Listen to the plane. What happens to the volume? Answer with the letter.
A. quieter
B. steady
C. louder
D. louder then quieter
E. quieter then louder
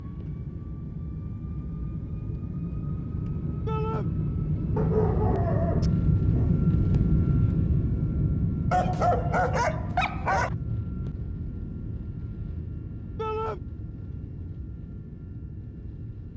D.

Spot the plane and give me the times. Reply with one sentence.
The plane can be heard from 0.0 to 16.3 s.